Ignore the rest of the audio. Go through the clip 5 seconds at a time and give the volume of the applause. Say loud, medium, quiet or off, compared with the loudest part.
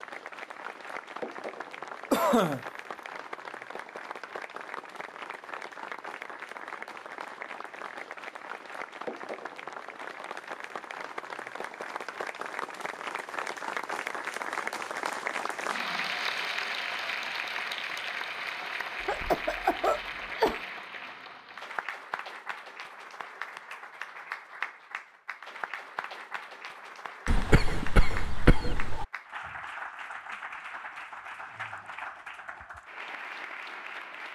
medium, medium, loud, loud, medium, medium, medium.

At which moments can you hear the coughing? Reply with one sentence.
The coughing can be heard from 2.1 to 2.6 s, from 19.0 to 20.6 s and from 27.2 to 29.1 s.